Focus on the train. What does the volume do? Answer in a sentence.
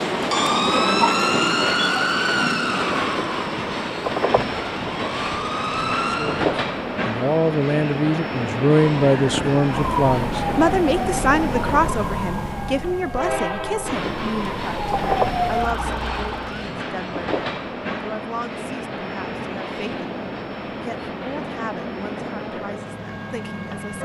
The volume of the train goes down.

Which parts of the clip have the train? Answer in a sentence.
The train can be heard from 0.0 to 23.9 s.